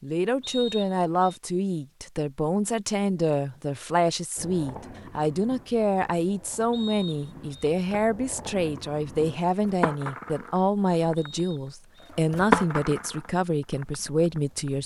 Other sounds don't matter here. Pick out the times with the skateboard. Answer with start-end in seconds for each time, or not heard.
4.3-14.7.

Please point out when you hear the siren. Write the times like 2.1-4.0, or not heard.
not heard.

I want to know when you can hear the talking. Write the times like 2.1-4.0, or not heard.
0.0-14.8.